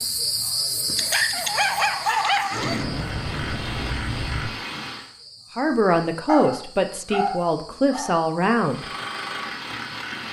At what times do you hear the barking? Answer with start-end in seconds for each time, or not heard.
0.9-2.9, 6.2-8.2.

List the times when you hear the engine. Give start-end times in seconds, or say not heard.
0.0-5.1, 8.7-10.2.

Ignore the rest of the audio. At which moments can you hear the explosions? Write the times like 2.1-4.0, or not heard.
2.5-4.5.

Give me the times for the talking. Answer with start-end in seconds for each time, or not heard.
5.5-8.8.